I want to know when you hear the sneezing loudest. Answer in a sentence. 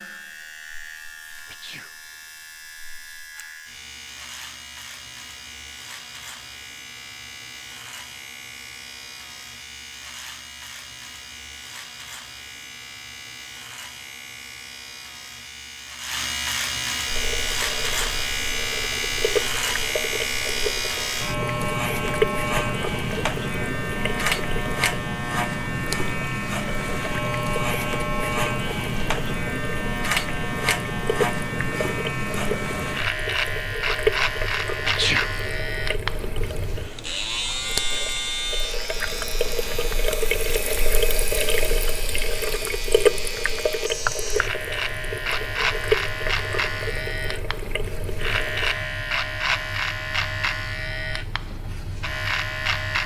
The volume of the sneezing peaks at 35 seconds.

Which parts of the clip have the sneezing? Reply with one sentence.
The sneezing can be heard from 1.4 to 1.9 s and from 34.8 to 35.3 s.